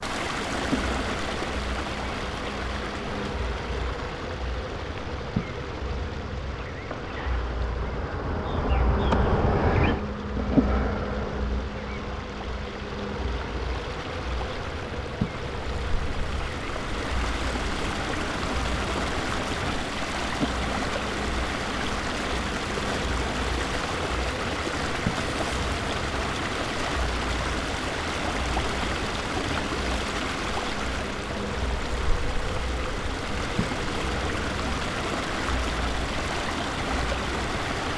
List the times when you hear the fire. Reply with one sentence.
The fire can't be heard in this clip.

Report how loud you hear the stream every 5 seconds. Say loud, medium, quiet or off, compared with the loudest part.
loud, quiet, medium, loud, loud, loud, loud, loud.